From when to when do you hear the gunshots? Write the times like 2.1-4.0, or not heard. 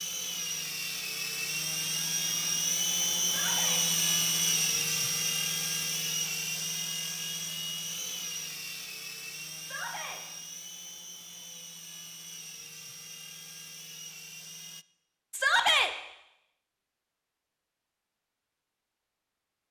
not heard.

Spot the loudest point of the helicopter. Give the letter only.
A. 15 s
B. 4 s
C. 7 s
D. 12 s
B.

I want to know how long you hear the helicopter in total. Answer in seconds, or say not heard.
15 s.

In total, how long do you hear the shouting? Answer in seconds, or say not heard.
2 s.